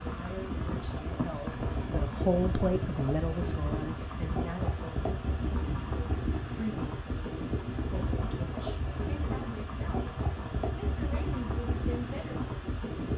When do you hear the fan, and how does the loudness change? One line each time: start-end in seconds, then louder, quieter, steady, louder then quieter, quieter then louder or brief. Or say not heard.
0.0-13.1 steady.